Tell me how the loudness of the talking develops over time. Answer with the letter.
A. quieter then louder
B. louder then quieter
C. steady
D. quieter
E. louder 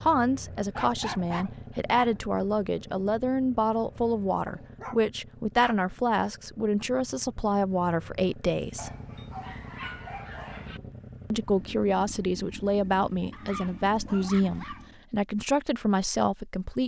C.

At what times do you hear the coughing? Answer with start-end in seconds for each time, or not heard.
not heard.